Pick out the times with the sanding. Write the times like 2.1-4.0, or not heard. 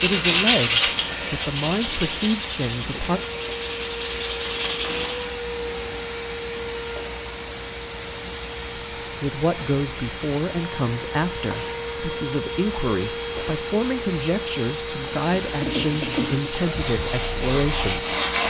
0.0-5.3, 15.4-18.4.